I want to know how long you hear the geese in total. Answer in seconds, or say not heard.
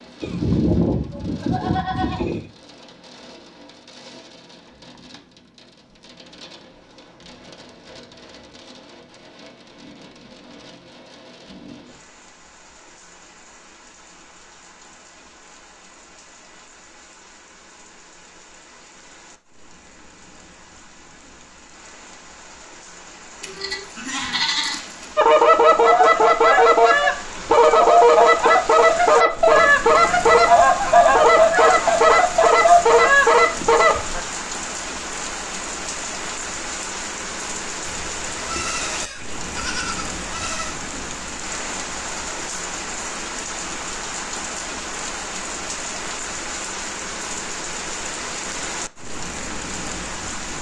9 s.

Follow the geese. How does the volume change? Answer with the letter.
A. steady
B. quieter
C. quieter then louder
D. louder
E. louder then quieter
A.